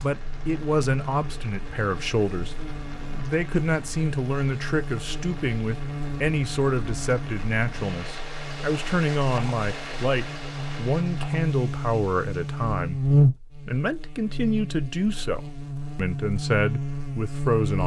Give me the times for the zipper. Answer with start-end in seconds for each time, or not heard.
not heard.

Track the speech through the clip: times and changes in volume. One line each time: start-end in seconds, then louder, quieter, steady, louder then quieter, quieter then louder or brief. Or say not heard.
0.0-17.8 steady.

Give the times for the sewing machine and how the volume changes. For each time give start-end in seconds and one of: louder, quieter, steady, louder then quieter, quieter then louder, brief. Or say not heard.
not heard.